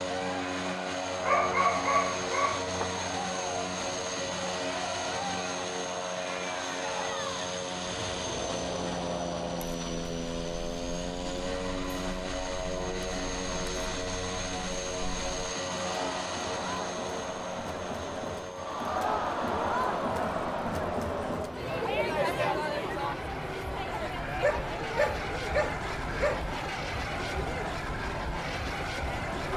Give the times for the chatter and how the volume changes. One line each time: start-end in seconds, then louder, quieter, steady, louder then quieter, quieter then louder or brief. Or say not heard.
0.0-29.5 louder then quieter.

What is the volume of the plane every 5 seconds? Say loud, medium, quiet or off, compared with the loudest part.
loud, loud, loud, loud, medium, loud.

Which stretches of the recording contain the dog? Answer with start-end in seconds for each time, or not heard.
1.2-3.0, 24.4-26.4.